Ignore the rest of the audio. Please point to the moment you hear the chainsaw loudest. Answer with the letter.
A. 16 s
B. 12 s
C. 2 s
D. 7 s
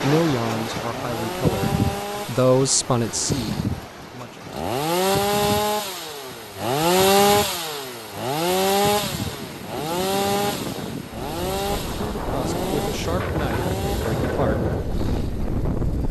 D.